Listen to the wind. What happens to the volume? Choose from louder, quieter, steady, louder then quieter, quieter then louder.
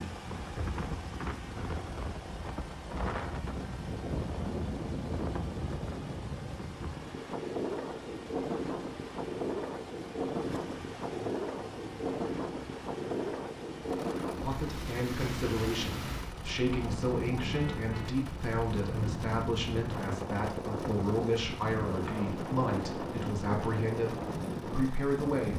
steady.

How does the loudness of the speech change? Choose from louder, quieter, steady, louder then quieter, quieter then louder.
steady.